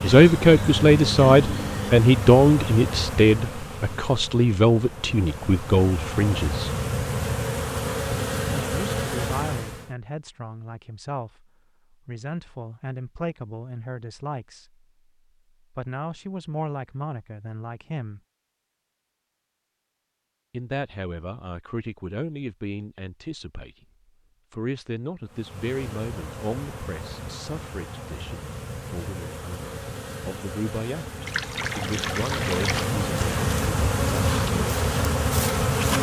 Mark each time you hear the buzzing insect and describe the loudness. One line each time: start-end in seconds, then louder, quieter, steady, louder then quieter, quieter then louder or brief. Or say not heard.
0.0-9.9 quieter then louder
25.2-35.9 louder.